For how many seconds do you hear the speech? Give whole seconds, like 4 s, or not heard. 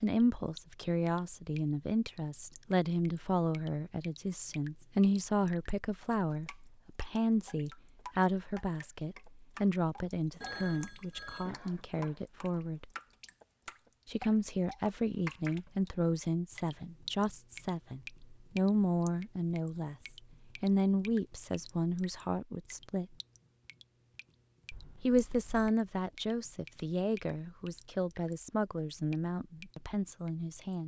28 s.